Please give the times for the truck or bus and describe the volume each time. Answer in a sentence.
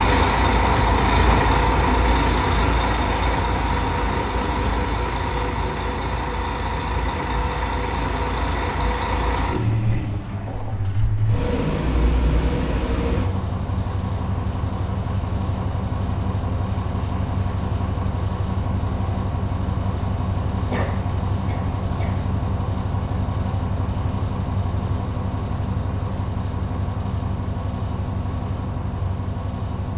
The truck or bus can be heard from 0.0 to 29.9 s, getting quieter.